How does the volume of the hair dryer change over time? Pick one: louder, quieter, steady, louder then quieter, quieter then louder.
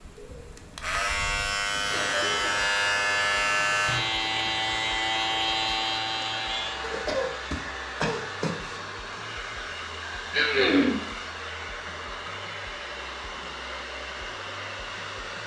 steady.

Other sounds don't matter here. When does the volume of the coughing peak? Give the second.
11 s.